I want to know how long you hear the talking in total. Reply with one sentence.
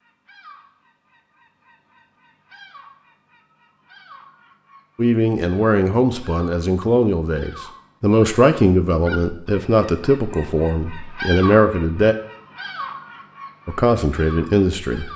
You can hear the talking for 9 seconds altogether.